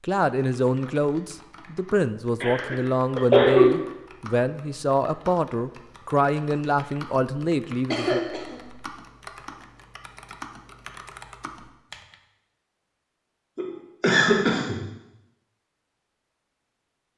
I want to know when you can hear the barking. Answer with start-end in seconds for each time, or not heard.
not heard.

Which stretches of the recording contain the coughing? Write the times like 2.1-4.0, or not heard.
2.4-3.8, 7.9-8.6, 13.6-14.8.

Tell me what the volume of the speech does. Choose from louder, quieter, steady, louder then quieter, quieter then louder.
steady.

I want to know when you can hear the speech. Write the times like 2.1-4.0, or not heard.
0.0-8.2.